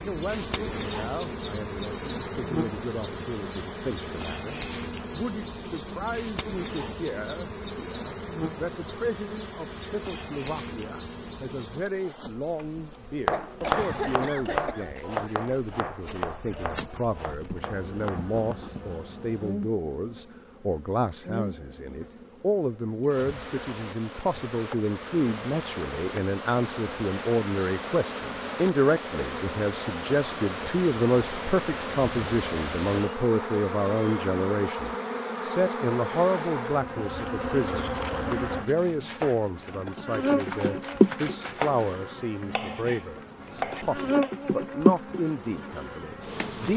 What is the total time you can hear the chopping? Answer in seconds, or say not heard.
13 s.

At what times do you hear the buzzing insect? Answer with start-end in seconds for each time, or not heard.
0.0-46.7.